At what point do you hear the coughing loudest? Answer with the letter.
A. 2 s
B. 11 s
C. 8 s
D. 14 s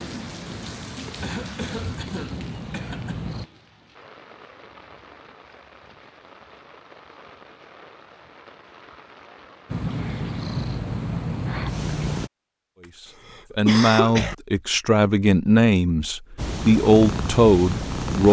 D.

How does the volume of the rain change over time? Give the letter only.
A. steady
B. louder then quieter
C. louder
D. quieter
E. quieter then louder
D.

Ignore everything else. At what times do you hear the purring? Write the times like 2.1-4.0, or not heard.
0.0-3.5, 9.7-12.3, 16.4-18.2.